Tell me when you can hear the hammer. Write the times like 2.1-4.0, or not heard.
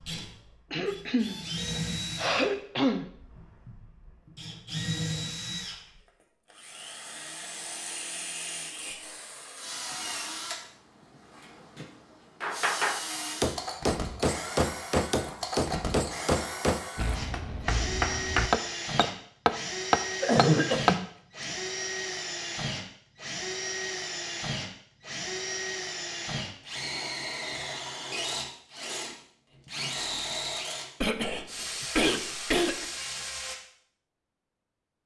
12.4-20.9.